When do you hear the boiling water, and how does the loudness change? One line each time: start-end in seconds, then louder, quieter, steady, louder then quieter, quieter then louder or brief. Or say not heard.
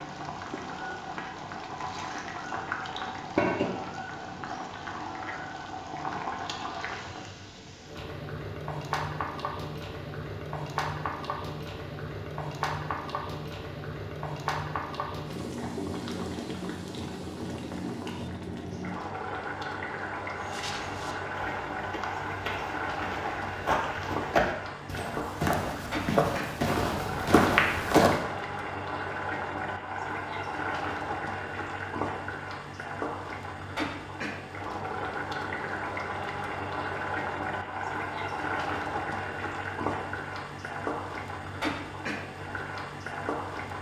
0.0-43.7 steady.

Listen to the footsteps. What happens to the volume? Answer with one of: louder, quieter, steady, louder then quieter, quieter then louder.
louder.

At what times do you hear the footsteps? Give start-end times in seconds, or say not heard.
20.4-28.2.